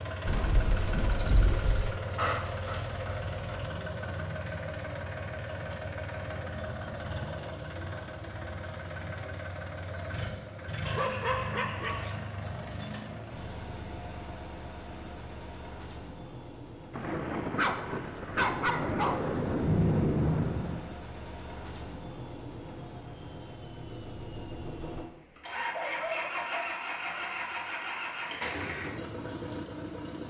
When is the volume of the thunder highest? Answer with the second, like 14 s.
20 s.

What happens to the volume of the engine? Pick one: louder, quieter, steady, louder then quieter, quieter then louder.
quieter then louder.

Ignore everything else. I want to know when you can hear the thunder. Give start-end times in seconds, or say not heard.
0.2-1.9, 16.9-20.9.